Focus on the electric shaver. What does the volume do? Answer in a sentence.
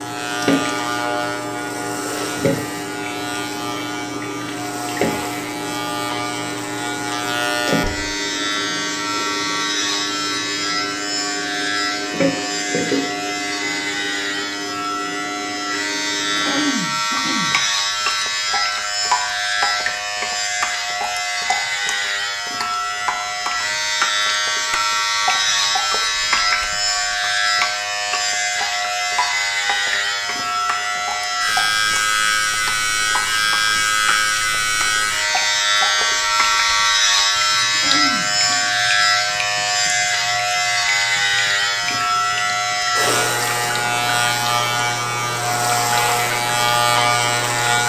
The loudness of the electric shaver goes up.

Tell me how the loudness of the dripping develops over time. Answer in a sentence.
The volume of the dripping goes down.